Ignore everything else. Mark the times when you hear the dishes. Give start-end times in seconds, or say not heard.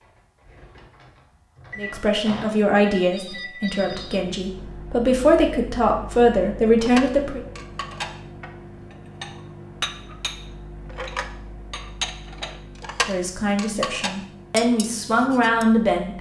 6.8-15.7.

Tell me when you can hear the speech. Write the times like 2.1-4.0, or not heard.
1.8-7.4, 13.1-16.1.